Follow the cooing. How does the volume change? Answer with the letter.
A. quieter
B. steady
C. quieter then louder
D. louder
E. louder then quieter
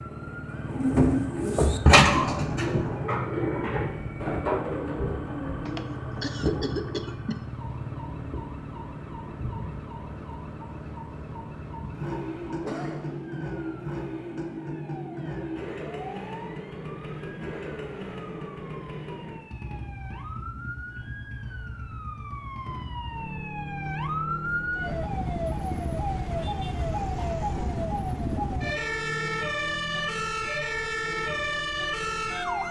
A.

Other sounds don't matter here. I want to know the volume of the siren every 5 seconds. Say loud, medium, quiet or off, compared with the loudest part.
quiet, quiet, quiet, quiet, medium, loud, loud.